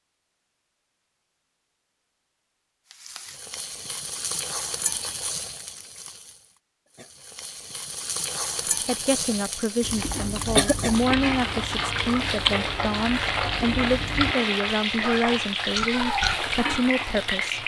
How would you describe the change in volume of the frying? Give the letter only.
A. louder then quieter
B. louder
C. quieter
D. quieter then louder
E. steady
B.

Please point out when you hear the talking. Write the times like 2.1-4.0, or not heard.
8.8-17.6.